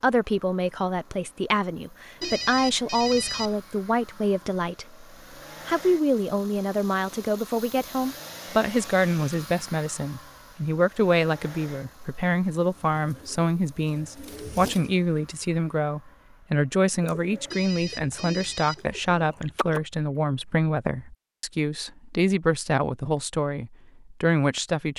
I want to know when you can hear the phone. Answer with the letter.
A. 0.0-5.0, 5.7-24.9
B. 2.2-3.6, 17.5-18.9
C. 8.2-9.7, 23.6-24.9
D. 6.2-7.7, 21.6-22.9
B.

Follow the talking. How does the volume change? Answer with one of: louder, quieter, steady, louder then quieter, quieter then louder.
steady.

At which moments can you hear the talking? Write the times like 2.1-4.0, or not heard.
0.0-5.0, 5.7-24.9.